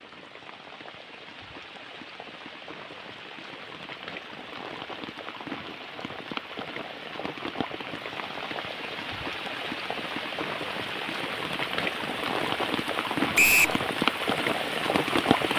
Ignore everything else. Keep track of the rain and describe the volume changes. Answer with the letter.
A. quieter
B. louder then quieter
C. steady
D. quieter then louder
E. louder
E.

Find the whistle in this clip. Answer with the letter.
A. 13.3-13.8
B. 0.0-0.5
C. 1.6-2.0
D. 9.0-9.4
A.